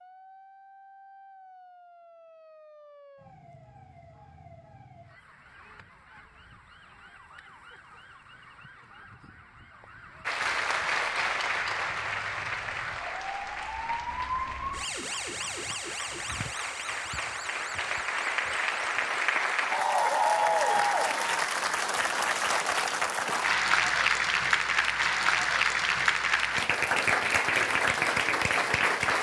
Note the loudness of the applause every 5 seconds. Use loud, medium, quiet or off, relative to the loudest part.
off, off, medium, medium, loud, loud.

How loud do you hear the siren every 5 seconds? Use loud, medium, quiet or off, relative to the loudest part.
quiet, quiet, loud, loud, off, off.